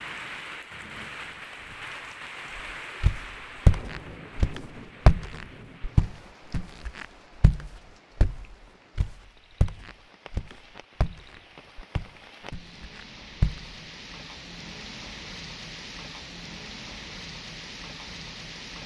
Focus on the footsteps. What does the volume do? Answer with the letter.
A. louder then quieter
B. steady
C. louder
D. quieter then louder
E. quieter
E.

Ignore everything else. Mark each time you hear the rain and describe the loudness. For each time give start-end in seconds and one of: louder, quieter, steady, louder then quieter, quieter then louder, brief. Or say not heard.
0.0-18.8 quieter then louder.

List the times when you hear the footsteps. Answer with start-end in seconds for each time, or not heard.
3.0-13.7.